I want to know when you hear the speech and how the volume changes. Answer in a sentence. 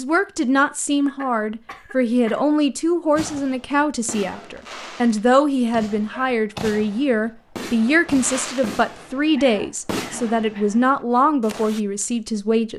You can hear the speech from 0.0 to 12.7 s, at a steady volume.